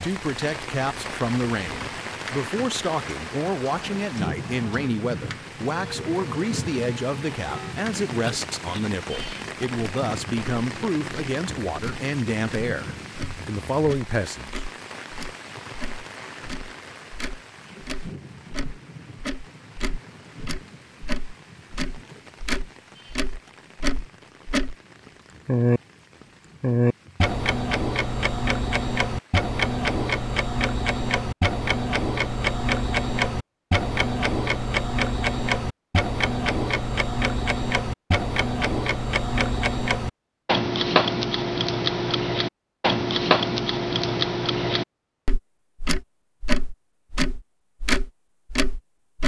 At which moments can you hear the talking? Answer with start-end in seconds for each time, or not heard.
0.0-14.7.